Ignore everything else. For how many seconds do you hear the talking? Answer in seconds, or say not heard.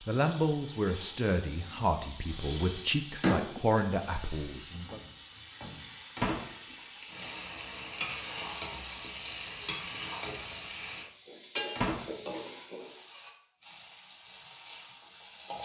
5 s.